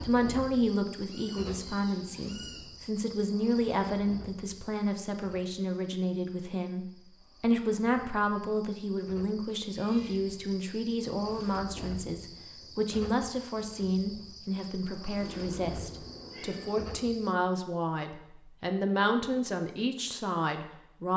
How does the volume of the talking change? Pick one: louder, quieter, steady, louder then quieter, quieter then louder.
steady.